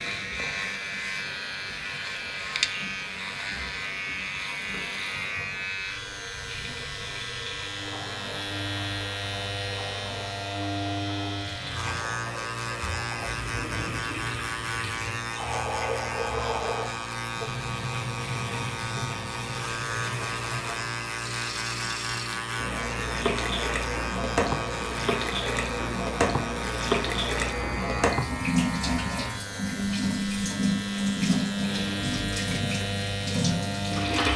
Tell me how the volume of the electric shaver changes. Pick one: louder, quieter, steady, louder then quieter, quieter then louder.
steady.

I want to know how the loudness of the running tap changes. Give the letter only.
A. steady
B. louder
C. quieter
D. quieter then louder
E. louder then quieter
B.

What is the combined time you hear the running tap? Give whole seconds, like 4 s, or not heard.
34 s.